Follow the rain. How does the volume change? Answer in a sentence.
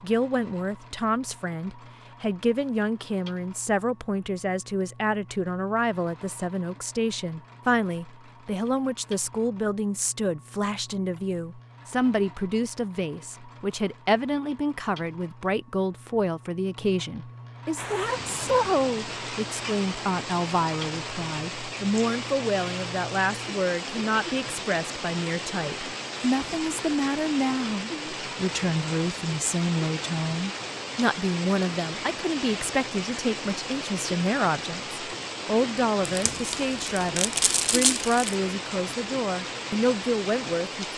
The volume of the rain stays about the same.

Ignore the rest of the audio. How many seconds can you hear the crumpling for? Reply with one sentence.
The crumpling can be heard for 2 seconds in total.